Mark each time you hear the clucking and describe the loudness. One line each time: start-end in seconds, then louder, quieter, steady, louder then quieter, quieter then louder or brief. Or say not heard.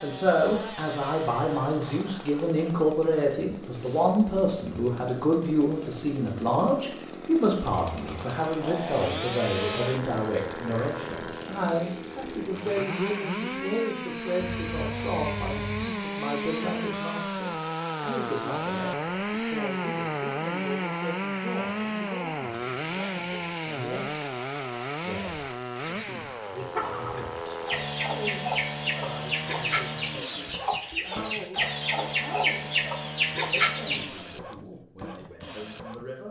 26.8-34.1 louder.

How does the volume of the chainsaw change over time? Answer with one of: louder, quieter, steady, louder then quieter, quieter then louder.
louder then quieter.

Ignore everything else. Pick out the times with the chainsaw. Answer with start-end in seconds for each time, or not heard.
0.0-36.1.